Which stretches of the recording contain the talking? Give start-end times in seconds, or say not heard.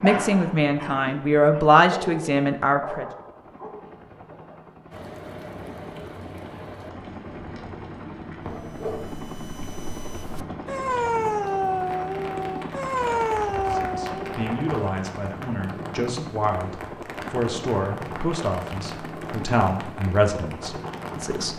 0.0-3.0, 13.6-21.5.